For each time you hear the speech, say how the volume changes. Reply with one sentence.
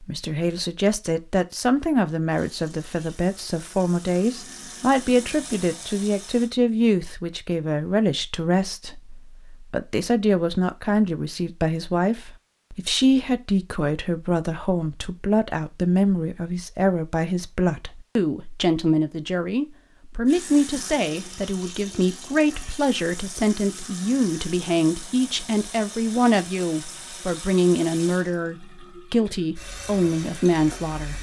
The speech can be heard from 0.0 to 31.1 s, at a steady volume.